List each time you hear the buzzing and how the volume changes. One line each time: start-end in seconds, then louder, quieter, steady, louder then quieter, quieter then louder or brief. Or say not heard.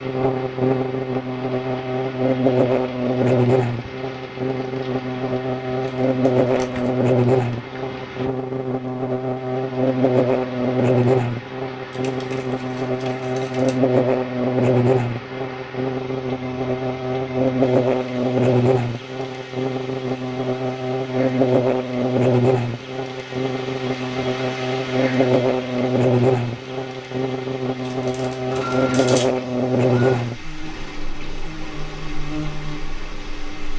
0.0-33.7 steady.